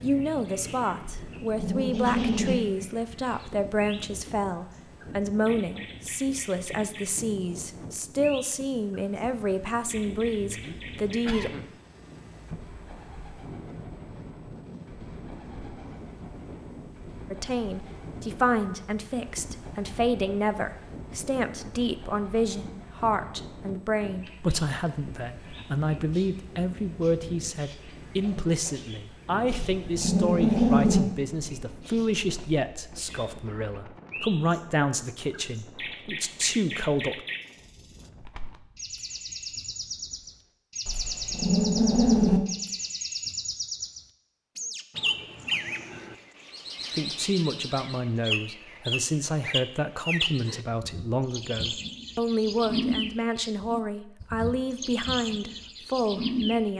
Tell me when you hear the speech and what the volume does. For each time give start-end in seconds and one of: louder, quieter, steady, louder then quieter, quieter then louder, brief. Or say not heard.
0.0-11.5 steady
17.3-37.2 steady
47.0-56.7 steady.